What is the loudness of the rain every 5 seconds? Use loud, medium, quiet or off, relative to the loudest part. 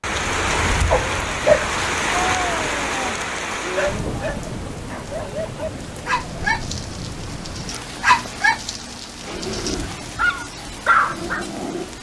loud, medium, medium.